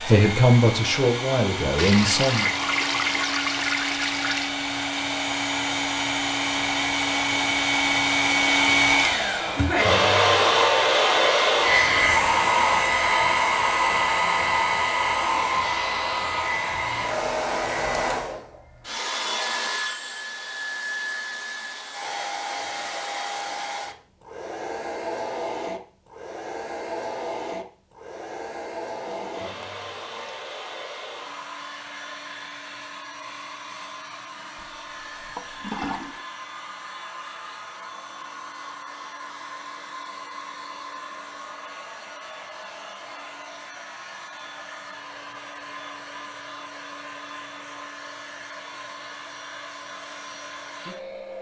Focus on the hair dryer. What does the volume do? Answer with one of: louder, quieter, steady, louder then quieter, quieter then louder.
quieter.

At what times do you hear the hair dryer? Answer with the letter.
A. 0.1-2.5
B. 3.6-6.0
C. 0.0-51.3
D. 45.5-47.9
C.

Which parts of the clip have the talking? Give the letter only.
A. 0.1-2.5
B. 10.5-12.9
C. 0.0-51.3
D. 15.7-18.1
A.